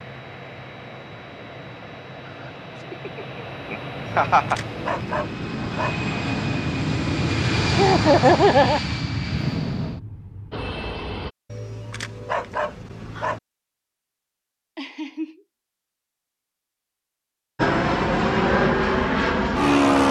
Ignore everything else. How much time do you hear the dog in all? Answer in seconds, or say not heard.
4 s.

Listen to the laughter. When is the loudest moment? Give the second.
8 s.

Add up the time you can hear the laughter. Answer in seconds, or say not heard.
4 s.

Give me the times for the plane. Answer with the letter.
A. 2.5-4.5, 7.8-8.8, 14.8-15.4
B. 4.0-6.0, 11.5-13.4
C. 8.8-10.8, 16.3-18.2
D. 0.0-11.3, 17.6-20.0
D.